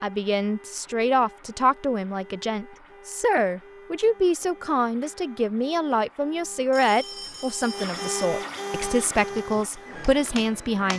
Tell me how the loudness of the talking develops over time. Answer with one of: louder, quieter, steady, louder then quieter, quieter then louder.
steady.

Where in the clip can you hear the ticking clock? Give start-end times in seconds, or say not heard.
not heard.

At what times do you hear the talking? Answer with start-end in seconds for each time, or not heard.
0.0-10.9.